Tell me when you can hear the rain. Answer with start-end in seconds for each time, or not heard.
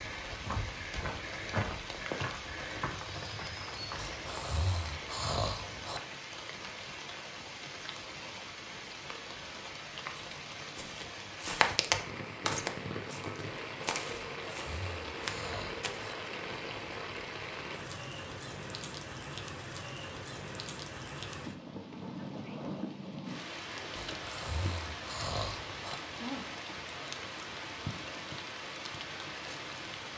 0.0-30.1.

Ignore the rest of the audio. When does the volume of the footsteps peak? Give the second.
12 s.